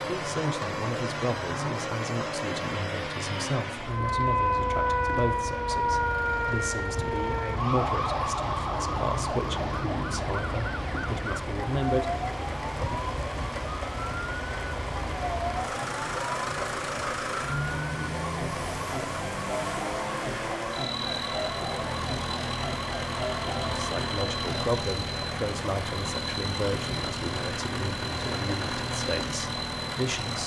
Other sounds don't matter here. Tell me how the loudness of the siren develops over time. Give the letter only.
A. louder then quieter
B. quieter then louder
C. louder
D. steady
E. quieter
E.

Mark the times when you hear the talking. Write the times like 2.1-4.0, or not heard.
0.0-12.2, 23.7-30.4.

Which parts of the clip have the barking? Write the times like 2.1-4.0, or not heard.
not heard.